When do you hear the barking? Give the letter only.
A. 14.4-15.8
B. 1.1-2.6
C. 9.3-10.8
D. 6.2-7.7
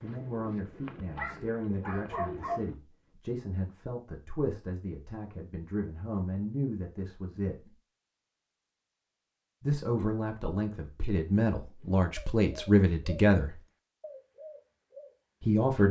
B.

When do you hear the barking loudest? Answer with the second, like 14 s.
2 s.